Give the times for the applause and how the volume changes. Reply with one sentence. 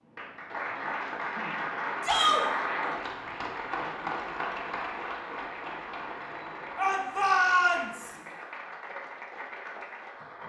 The applause can be heard from 0.1 to 10.4 s, getting quieter.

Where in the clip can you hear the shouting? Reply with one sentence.
You can hear the shouting from 2.0 to 2.5 s and from 6.8 to 8.1 s.